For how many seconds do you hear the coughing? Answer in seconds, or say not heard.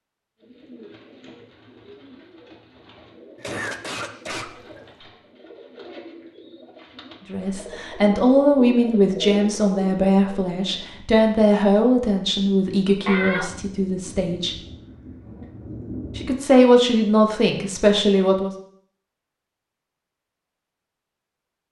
2 s.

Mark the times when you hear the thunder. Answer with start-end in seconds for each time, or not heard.
13.4-16.5.